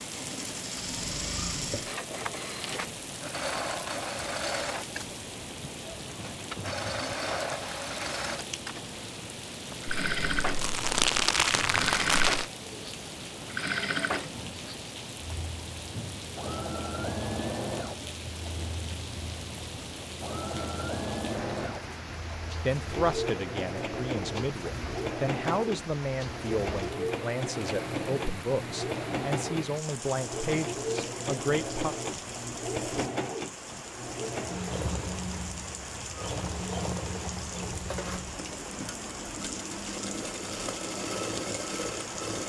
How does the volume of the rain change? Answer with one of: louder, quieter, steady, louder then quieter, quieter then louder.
steady.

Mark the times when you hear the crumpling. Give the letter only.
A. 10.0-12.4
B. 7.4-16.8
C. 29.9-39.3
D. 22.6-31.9
A.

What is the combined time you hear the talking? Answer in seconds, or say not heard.
9 s.